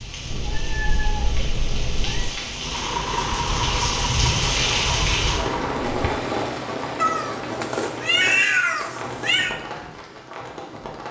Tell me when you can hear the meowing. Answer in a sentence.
The meowing can be heard from 0.3 to 2.3 s and from 7.0 to 9.6 s.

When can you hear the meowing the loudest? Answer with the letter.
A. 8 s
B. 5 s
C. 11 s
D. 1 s
A.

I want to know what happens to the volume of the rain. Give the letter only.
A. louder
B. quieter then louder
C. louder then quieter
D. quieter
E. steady
C.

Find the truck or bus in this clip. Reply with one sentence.
You can hear the truck or bus from 2.6 to 6.0 s.